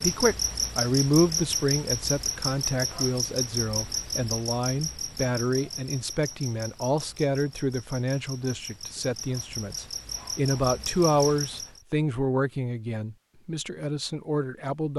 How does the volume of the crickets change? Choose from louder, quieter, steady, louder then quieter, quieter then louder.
quieter then louder.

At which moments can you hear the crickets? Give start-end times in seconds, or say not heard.
0.0-11.8.